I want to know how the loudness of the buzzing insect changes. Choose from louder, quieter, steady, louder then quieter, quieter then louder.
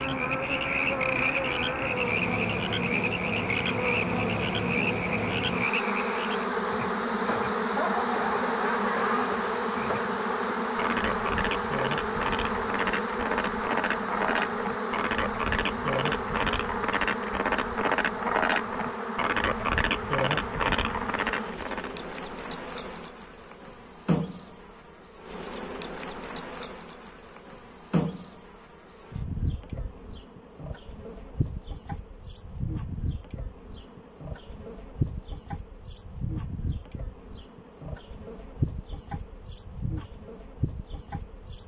quieter.